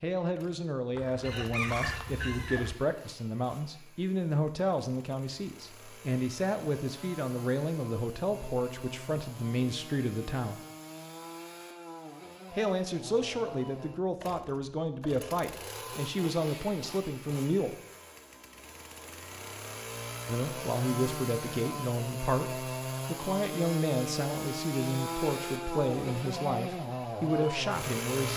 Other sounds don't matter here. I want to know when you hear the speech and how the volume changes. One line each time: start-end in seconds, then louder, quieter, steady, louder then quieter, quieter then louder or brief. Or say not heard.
0.0-10.6 steady
12.5-17.8 steady
20.2-28.3 steady.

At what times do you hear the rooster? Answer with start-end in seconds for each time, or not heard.
0.9-2.8.